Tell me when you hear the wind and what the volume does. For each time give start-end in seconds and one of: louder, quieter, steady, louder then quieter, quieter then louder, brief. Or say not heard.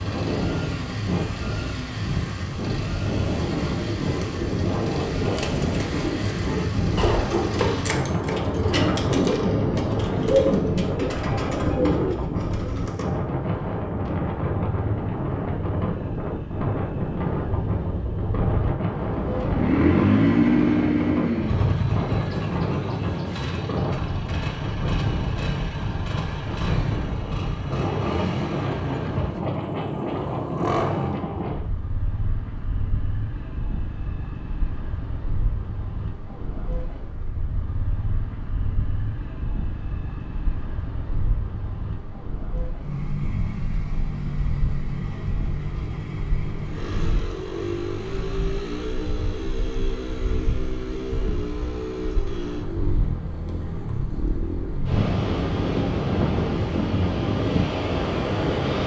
0.0-58.8 quieter then louder.